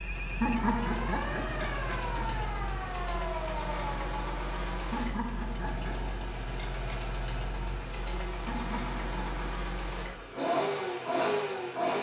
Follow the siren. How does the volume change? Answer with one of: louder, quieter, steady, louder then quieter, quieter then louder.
steady.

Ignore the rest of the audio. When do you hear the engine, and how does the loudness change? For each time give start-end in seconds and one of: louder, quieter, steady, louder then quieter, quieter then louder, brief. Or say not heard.
0.0-11.9 louder.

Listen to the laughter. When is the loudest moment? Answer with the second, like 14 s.
1 s.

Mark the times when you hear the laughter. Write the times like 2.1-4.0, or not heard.
0.4-2.4, 4.9-6.2, 8.4-9.4.